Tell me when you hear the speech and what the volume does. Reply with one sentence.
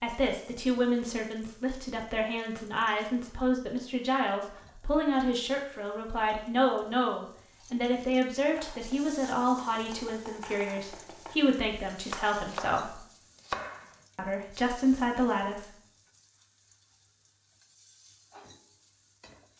You can hear the speech from 0.0 to 13.0 s, at a steady volume; and briefly from 14.2 to 15.7 s.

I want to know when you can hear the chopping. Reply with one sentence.
You can hear the chopping from 8.4 to 13.9 s.